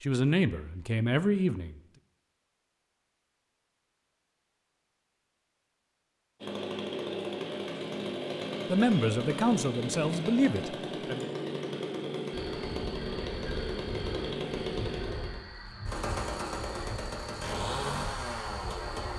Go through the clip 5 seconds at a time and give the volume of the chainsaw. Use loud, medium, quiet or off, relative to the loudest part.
off, loud, loud, loud.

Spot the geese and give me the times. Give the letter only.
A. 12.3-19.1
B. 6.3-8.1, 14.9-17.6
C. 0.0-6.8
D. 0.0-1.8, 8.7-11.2
A.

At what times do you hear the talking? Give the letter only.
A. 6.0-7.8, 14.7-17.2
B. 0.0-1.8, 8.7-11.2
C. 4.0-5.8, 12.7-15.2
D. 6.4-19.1
B.